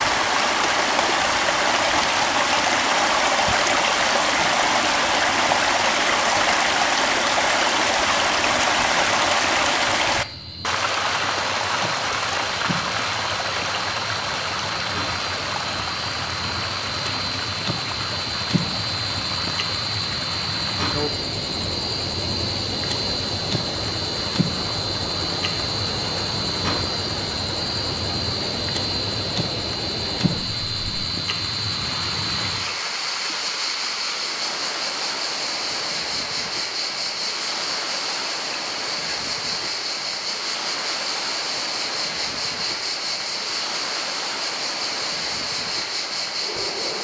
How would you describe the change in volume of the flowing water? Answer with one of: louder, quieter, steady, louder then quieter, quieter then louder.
quieter.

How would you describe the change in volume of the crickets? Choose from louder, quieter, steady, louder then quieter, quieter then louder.
louder.